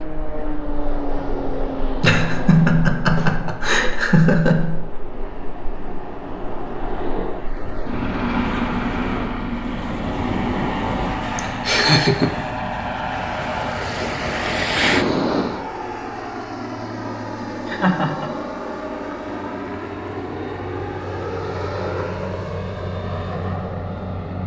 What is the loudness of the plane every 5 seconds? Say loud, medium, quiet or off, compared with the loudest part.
medium, loud, loud, loud, loud.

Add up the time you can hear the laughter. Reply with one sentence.
The laughter can be heard for 4 seconds in total.